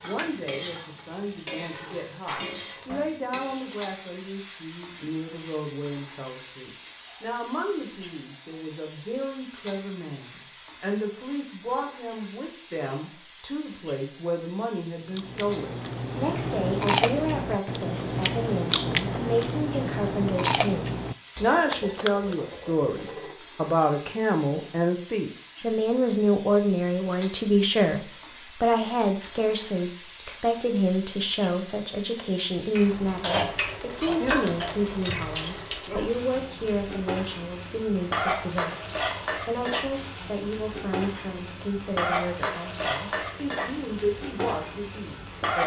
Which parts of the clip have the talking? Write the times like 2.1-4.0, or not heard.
0.0-45.6.